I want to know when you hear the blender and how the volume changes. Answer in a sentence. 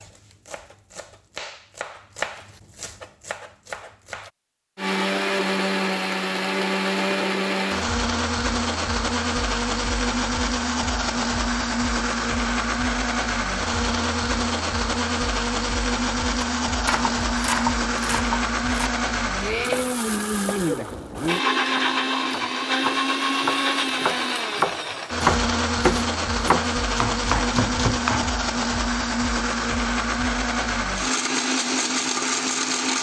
The blender can be heard from 4.8 to 32.9 s, at a steady volume.